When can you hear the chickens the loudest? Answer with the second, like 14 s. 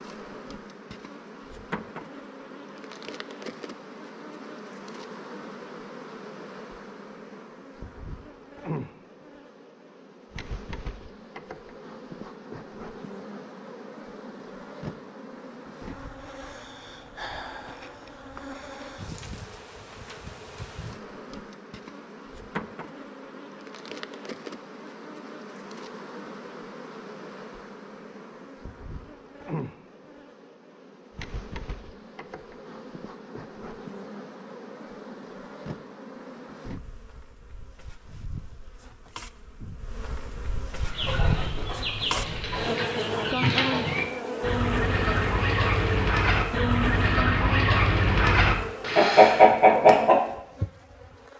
49 s.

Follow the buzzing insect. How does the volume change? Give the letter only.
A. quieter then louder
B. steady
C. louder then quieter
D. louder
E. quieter
D.